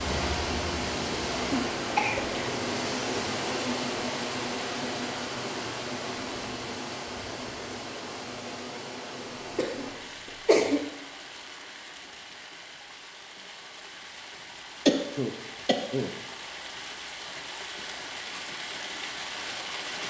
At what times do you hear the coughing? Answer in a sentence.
You can hear the coughing from 1.5 to 2.3 s, from 9.6 to 10.8 s and from 14.8 to 16.1 s.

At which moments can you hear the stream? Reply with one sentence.
You can hear the stream from 0.0 to 20.0 s.